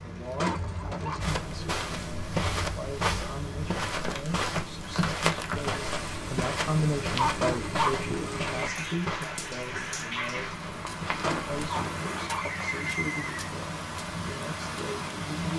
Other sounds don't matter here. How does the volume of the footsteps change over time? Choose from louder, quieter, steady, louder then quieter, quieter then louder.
quieter.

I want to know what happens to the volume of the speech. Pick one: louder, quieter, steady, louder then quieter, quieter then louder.
louder then quieter.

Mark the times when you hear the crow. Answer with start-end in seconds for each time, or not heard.
not heard.